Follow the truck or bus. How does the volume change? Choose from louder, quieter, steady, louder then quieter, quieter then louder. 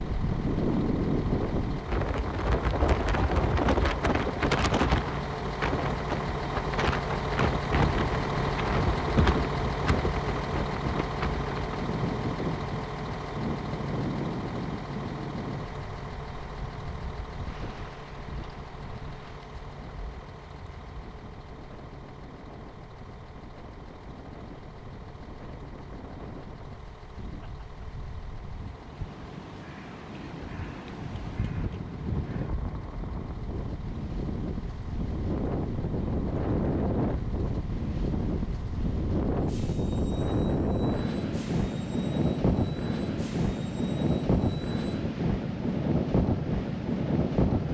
quieter.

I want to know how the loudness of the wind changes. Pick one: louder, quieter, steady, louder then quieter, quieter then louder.
quieter then louder.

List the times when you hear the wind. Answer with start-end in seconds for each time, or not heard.
0.0-47.6.